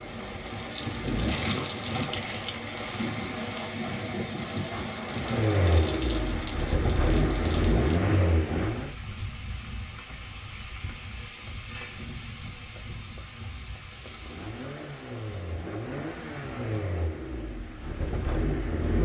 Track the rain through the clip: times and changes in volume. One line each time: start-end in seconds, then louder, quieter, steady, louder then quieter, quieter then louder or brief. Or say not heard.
0.0-19.0 quieter.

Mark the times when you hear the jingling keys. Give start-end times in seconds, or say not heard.
1.2-3.0.